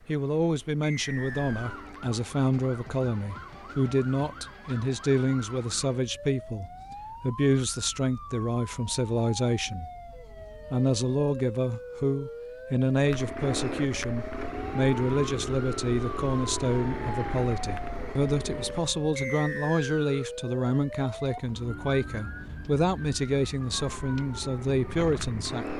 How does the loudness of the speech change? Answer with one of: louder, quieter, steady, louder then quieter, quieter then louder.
steady.